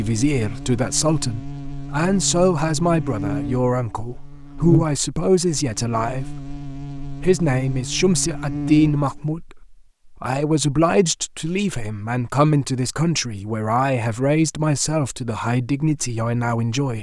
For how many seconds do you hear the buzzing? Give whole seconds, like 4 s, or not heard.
9 s.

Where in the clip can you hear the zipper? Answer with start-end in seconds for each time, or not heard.
not heard.